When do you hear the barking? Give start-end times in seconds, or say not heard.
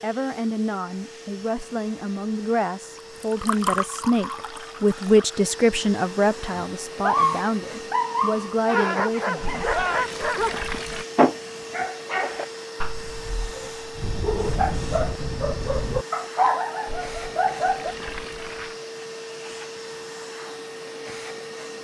6.5-17.9.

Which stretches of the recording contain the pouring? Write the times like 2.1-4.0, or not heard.
3.0-5.4, 9.4-11.1, 16.9-18.8.